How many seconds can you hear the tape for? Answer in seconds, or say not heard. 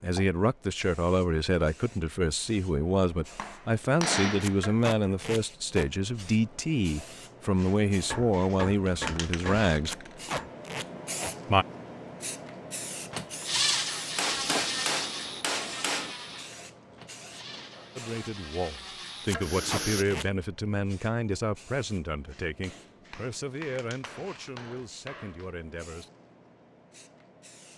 4 s.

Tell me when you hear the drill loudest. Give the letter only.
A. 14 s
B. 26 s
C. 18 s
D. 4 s
A.